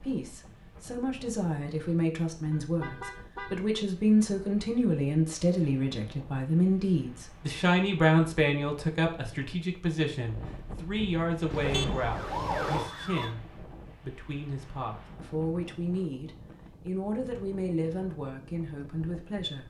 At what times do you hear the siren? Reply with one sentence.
The siren can be heard from 11.9 to 13.3 s.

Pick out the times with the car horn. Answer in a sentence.
You can hear the car horn from 2.5 to 3.6 s and from 11.5 to 12.9 s.